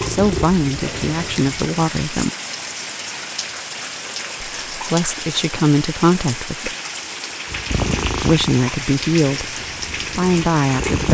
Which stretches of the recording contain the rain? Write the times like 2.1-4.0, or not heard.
0.0-11.0.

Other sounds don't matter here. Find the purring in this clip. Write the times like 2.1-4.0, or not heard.
0.0-1.8, 7.5-11.0.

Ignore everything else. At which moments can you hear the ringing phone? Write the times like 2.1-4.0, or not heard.
not heard.